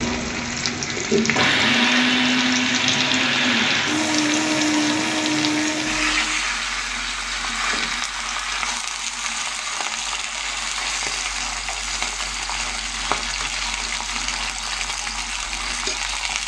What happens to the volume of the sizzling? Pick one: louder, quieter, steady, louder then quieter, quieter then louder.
steady.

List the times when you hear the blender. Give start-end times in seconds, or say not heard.
0.0-6.4.